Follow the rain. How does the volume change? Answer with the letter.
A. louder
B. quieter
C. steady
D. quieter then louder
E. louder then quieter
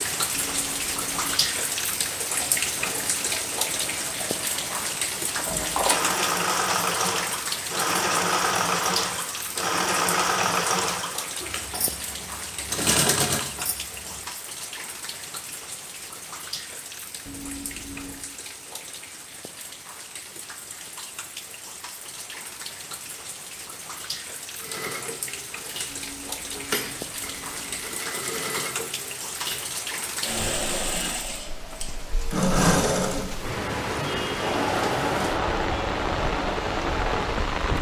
D.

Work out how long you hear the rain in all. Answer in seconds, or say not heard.
38 s.